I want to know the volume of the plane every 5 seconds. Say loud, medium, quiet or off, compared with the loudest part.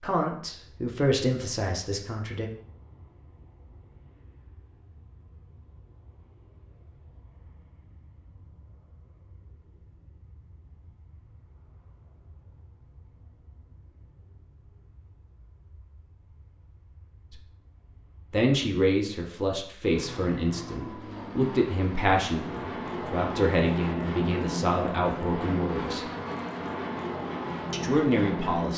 quiet, quiet, quiet, quiet, loud, loud.